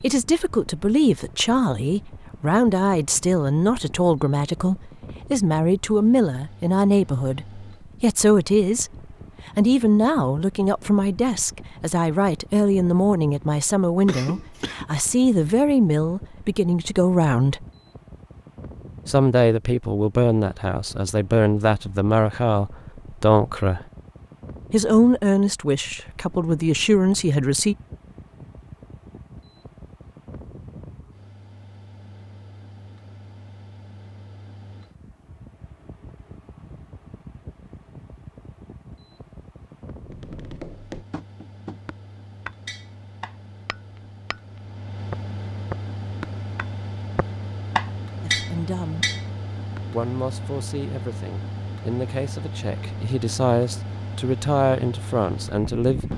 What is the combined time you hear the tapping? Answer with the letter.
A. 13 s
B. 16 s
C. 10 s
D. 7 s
C.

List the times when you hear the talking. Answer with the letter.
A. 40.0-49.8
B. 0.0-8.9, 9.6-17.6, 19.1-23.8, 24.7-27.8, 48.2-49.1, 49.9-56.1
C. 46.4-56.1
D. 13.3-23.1
B.